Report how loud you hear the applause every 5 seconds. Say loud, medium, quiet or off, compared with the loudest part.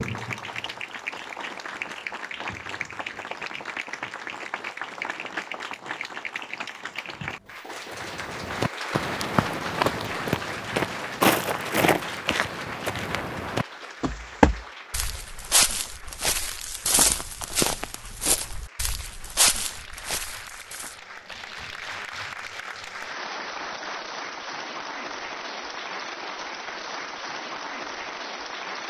loud, loud, loud, quiet, loud, loud.